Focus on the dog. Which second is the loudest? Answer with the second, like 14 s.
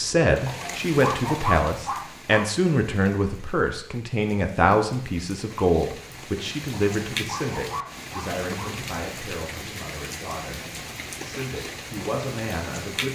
1 s.